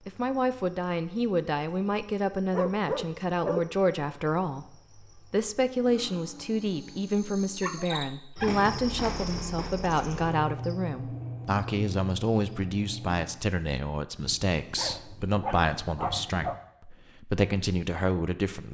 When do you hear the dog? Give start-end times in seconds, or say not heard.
2.5-3.6, 7.6-8.6, 14.2-16.6.